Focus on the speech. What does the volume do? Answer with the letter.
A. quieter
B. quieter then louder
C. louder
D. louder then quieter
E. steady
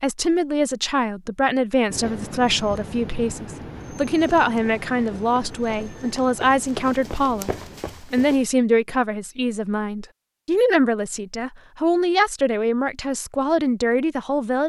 E.